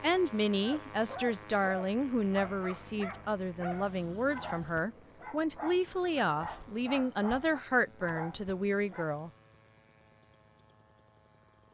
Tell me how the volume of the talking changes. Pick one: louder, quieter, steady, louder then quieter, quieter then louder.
steady.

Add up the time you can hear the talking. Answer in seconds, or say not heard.
9 s.